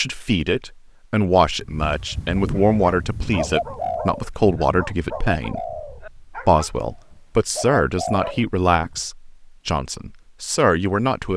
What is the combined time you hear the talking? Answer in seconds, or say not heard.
11 s.